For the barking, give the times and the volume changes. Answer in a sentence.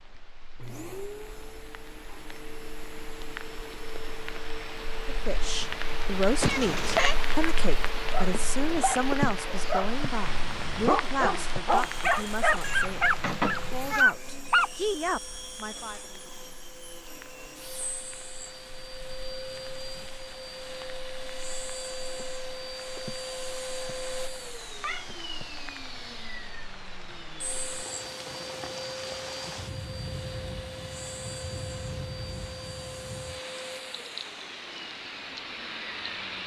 The barking can be heard from 8.0 to 14.7 s, getting louder.